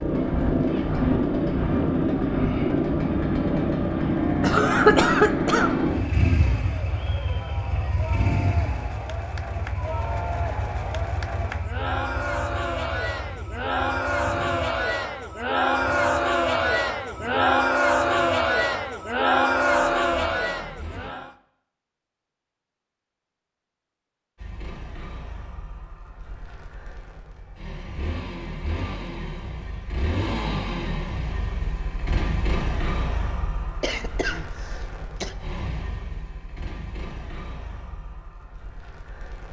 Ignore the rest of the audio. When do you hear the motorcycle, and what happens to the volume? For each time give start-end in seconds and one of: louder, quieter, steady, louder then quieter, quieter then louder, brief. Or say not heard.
0.0-21.1 quieter
24.4-39.4 louder then quieter.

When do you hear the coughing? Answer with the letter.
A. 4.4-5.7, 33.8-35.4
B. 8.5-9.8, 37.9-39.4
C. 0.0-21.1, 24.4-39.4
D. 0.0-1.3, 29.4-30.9
A.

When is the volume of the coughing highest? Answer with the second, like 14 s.
5 s.